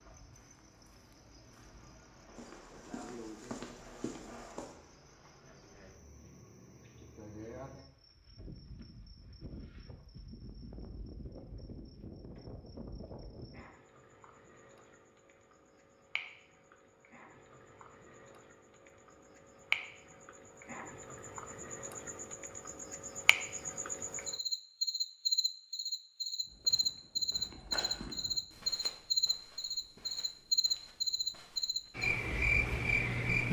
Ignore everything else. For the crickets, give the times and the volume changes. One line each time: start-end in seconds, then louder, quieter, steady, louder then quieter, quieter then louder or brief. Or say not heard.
0.0-33.4 louder.